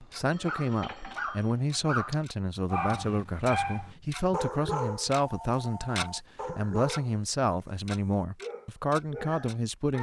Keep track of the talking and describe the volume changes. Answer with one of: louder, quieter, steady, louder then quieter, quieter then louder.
steady.